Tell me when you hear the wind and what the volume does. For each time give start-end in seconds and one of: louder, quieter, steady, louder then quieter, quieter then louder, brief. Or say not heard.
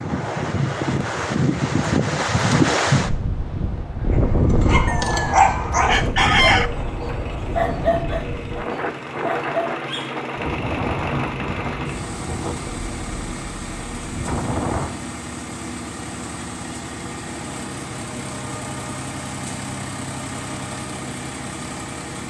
0.0-14.9 quieter.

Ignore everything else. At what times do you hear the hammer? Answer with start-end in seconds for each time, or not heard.
not heard.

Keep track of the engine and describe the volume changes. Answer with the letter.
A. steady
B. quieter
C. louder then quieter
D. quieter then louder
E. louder
A.